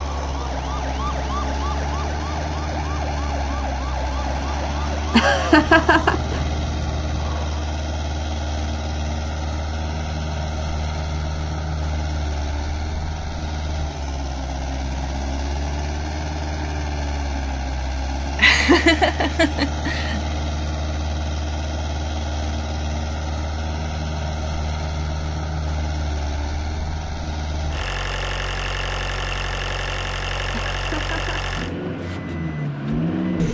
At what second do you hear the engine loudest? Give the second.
33 s.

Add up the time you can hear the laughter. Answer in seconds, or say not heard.
4 s.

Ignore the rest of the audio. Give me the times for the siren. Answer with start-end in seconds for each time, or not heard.
0.0-7.6.